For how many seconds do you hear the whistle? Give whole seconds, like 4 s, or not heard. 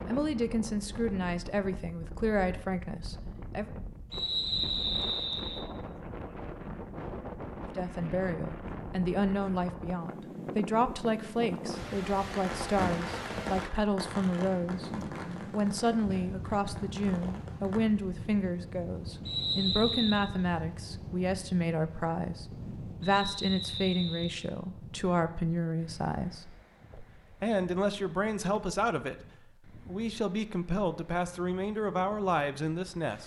4 s.